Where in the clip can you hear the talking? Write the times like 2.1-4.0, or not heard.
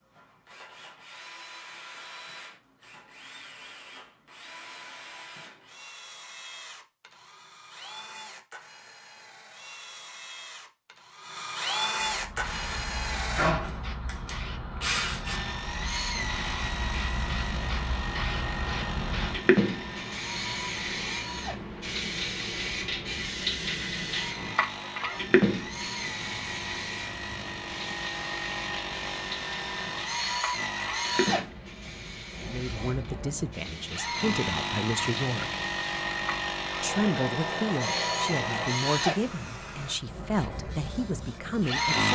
32.4-35.5, 36.8-42.0.